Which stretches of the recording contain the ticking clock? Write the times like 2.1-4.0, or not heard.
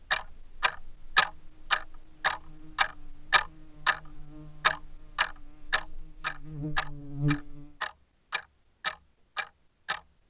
0.1-4.0, 4.6-10.0.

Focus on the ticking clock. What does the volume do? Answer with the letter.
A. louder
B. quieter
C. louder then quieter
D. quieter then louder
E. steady
B.